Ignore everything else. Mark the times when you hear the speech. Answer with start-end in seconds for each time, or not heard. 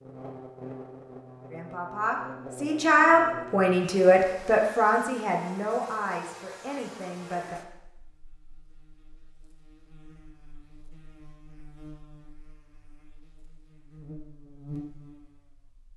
1.5-7.6.